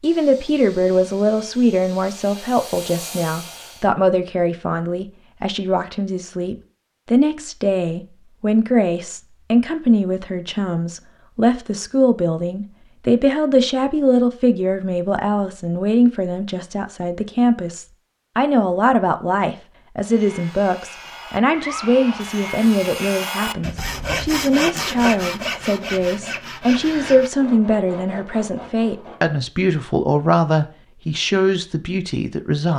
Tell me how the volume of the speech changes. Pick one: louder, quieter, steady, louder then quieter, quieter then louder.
steady.